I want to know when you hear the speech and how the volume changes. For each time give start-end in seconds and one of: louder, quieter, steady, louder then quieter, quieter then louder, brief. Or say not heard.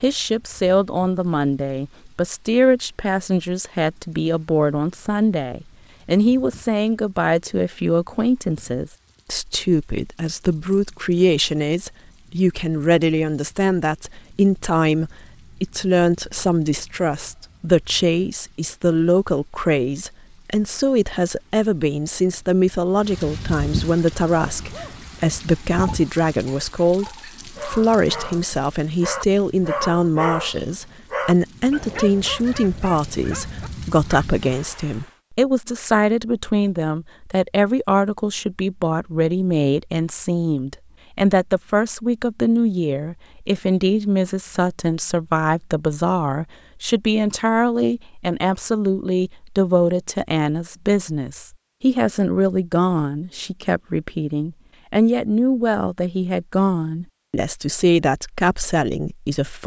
0.0-59.6 steady.